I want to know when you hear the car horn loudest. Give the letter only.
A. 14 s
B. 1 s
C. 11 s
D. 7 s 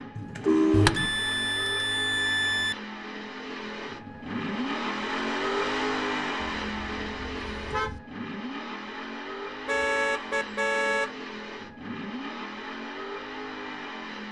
B.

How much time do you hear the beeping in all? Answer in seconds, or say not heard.
2 s.